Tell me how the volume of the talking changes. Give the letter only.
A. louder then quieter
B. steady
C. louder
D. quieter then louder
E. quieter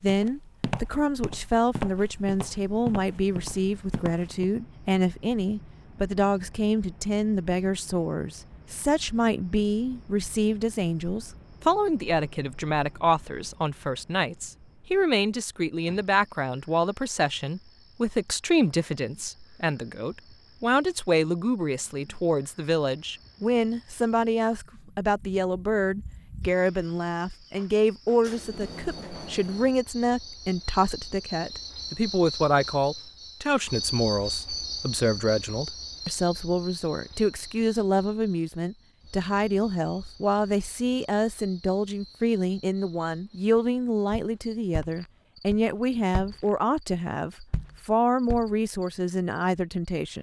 B.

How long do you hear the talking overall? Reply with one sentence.
The talking can be heard for 50 seconds in total.